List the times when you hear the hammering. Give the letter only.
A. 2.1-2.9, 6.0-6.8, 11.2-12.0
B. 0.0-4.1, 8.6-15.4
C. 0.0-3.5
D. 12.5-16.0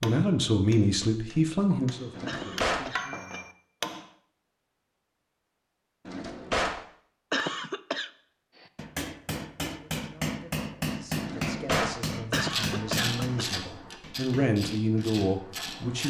B.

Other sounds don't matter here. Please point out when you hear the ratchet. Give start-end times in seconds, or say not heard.
12.5-16.0.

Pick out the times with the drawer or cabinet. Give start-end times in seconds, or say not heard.
2.1-2.9, 6.0-6.8, 11.2-12.0.